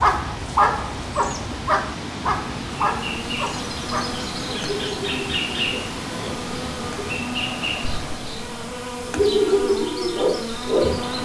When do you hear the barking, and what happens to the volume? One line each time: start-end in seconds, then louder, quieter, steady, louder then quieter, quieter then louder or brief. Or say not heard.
0.0-7.2 quieter
9.1-11.2 brief.